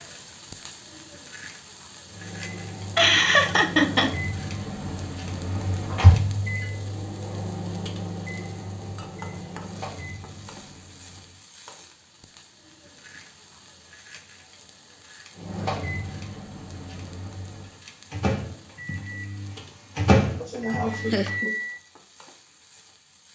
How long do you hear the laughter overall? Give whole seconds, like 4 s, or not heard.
2 s.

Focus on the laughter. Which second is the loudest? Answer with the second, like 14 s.
3 s.